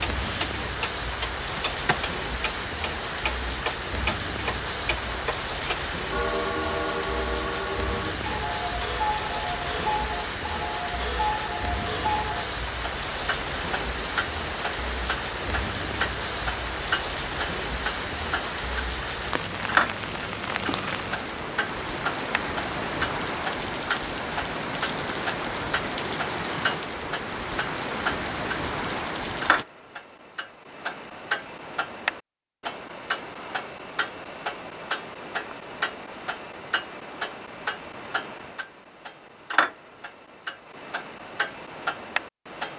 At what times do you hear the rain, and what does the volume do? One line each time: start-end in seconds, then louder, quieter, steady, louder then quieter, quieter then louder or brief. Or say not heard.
0.0-29.6 steady.